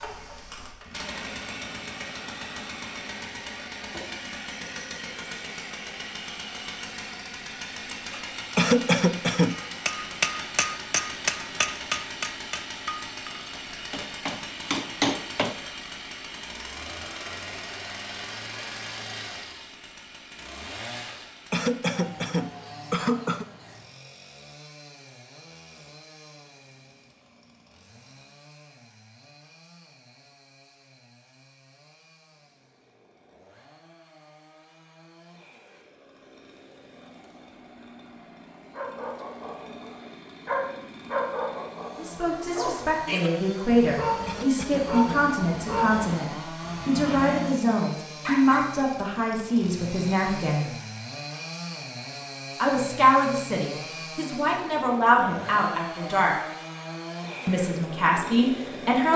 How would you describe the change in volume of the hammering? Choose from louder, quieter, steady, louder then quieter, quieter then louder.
quieter then louder.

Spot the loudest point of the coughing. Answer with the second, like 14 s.
9 s.